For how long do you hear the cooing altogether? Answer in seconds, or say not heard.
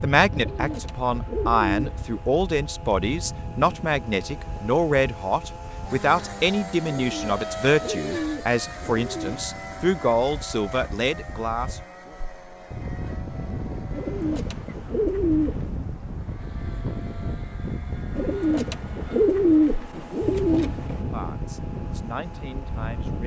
9 s.